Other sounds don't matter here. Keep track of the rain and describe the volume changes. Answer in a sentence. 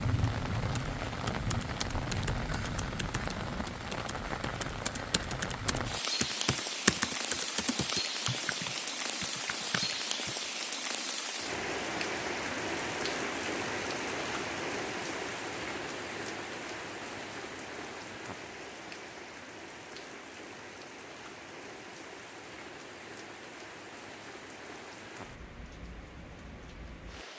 The loudness of the rain goes down.